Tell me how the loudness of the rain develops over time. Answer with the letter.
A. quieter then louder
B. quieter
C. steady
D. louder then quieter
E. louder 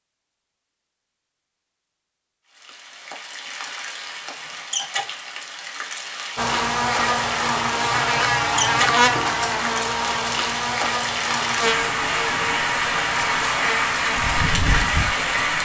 E.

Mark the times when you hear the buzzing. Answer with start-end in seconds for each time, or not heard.
6.3-15.6.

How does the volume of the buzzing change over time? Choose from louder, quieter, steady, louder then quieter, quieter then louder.
quieter.